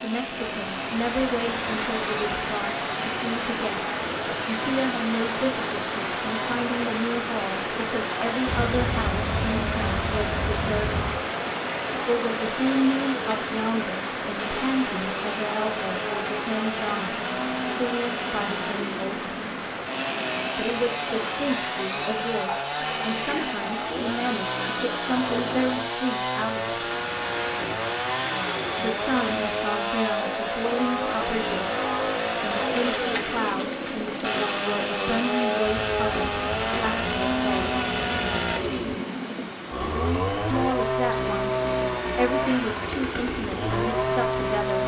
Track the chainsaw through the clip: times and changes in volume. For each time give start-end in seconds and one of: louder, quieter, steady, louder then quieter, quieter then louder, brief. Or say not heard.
0.0-44.8 louder.